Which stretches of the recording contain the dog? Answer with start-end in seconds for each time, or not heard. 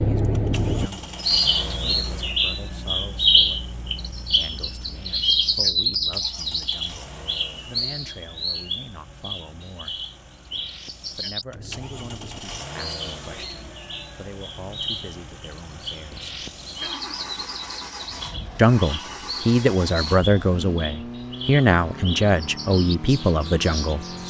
not heard.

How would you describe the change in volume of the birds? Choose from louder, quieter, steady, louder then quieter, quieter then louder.
quieter.